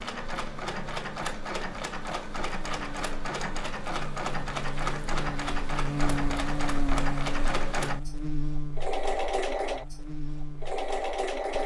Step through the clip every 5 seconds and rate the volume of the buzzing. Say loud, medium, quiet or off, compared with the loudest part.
medium, loud, medium.